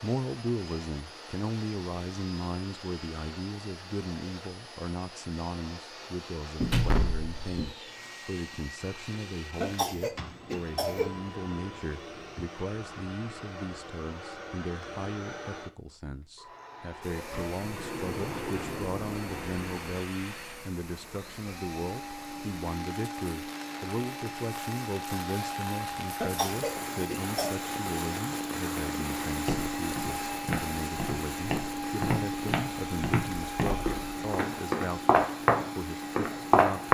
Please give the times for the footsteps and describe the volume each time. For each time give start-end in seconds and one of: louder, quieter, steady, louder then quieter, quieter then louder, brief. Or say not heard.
29.2-36.8 louder.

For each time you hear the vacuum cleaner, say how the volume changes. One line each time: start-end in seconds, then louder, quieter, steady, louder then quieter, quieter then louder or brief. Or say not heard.
0.0-36.8 louder.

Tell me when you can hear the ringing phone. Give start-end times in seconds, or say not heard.
not heard.